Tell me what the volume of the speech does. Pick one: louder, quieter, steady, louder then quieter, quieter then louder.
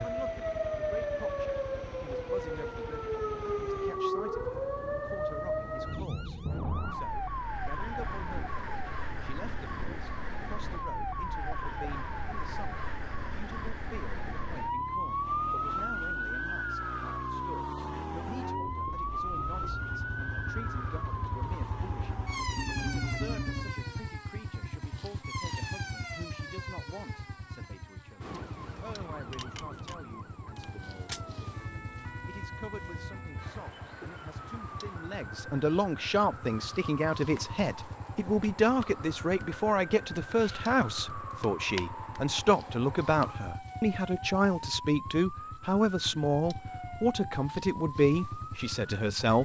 louder.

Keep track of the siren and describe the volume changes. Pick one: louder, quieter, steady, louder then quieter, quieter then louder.
quieter.